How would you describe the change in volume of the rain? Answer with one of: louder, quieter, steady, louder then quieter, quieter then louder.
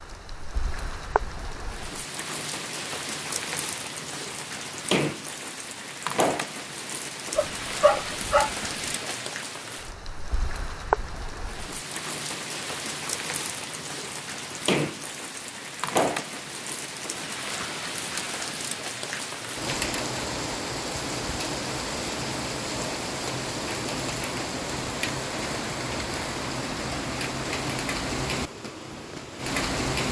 steady.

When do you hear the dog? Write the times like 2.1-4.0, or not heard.
7.3-8.8.